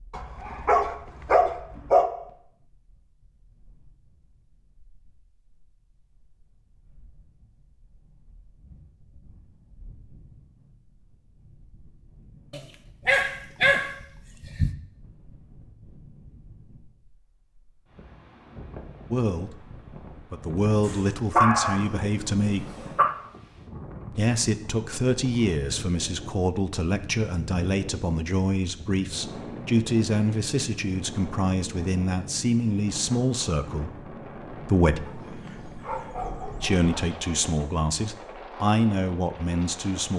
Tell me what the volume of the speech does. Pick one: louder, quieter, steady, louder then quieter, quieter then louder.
steady.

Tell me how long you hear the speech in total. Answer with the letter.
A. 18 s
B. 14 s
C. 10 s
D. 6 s
A.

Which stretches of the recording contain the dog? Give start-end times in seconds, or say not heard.
0.1-2.1, 12.5-14.8, 20.9-23.1, 35.0-37.0.